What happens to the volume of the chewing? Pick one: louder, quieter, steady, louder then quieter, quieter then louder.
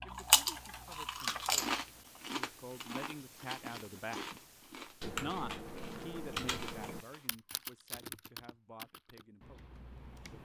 quieter.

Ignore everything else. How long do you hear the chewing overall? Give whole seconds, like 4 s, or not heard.
7 s.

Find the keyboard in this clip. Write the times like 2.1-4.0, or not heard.
0.0-2.2, 5.0-10.4.